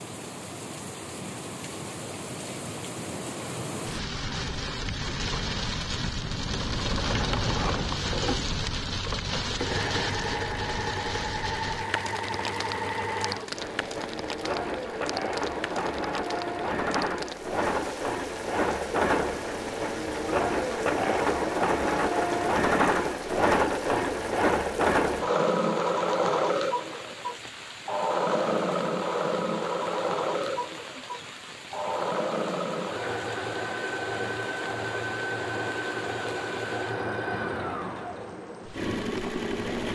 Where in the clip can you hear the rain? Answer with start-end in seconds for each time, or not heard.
0.0-39.8.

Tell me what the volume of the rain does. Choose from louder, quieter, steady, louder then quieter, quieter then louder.
quieter.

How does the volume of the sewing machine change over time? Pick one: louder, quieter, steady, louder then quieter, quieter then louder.
louder then quieter.